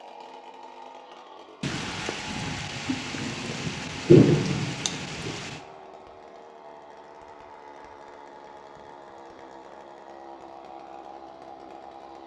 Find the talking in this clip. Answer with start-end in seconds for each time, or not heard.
not heard.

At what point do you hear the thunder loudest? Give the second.
4 s.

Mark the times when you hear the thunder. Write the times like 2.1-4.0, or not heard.
1.6-5.5.